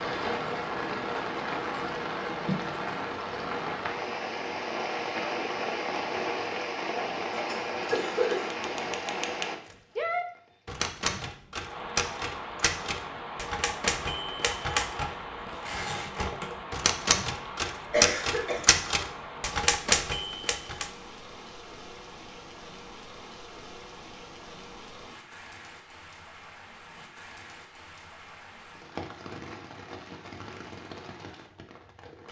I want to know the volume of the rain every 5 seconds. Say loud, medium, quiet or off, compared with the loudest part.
loud, loud, medium, medium, quiet, quiet, quiet.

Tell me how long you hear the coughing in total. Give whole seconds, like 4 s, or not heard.
2 s.